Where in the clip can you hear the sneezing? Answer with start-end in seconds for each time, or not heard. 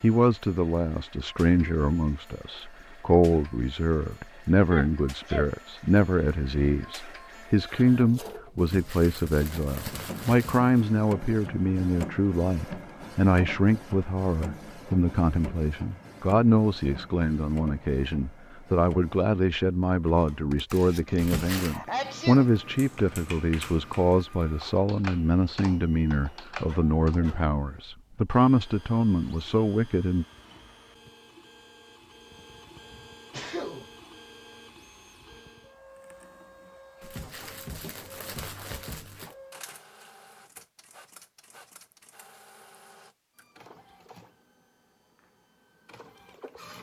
4.7-5.5, 21.1-22.4, 33.3-33.9.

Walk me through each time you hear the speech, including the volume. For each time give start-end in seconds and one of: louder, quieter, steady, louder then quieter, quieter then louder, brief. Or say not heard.
0.0-30.2 steady.